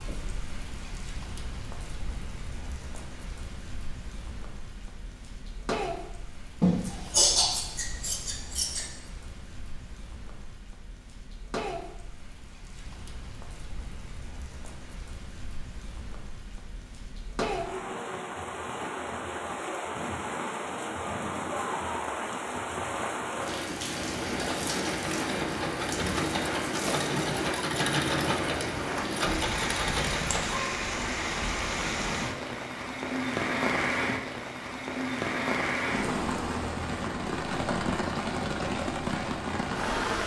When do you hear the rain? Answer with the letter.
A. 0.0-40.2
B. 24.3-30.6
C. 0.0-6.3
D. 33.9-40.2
A.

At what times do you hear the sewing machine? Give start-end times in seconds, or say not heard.
24.3-30.6.